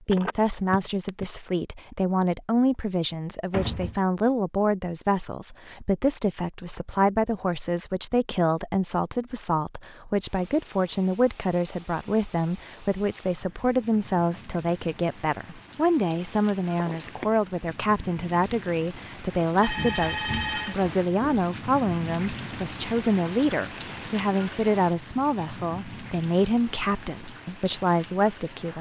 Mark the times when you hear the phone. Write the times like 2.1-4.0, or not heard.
0.1-1.2, 16.9-17.4, 19.6-21.4.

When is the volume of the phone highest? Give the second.
20 s.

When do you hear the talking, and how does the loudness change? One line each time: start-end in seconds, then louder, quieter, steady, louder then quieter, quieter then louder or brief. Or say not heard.
0.1-28.7 steady.